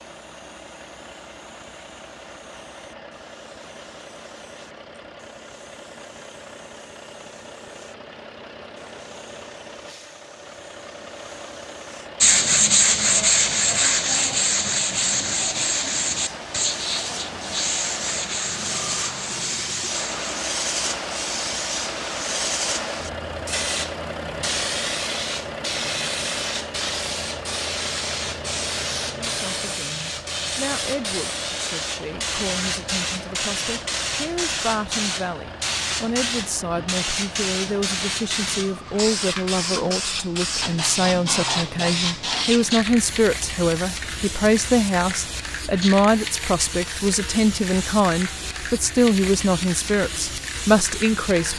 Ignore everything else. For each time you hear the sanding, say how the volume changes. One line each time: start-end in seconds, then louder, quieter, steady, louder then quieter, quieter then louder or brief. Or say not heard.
12.2-20.3 quieter.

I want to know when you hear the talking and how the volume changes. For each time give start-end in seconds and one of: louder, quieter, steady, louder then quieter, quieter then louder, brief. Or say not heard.
29.1-51.5 louder.